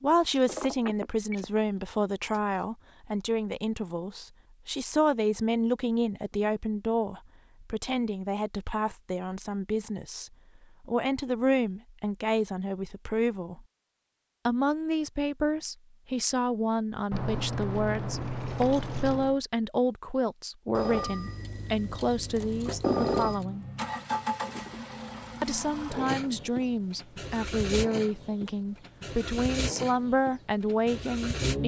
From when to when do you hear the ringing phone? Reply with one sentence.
You can hear the ringing phone from 0.5 to 1.6 s and from 20.7 to 23.4 s.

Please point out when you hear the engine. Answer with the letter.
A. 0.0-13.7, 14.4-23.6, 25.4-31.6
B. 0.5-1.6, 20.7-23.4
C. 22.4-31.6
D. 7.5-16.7
C.